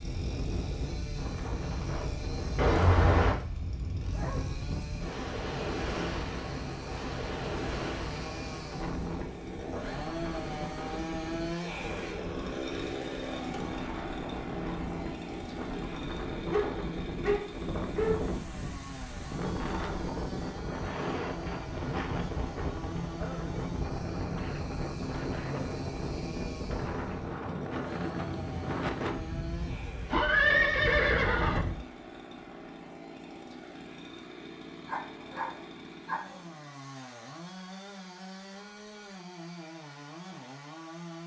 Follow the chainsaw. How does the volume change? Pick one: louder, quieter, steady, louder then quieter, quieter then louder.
louder then quieter.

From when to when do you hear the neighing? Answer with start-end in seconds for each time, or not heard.
2.5-3.4, 30.1-31.6.